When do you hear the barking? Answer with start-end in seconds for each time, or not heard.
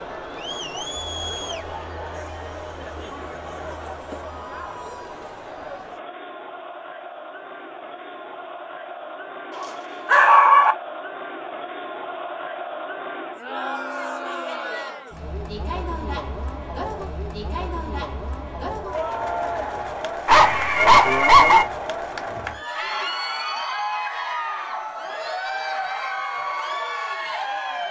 9.6-10.8, 20.2-21.6.